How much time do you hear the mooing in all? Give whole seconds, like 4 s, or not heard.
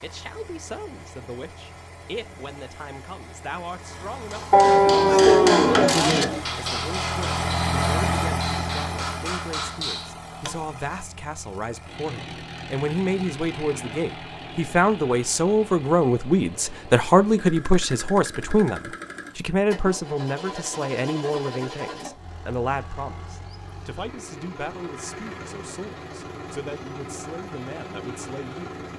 2 s.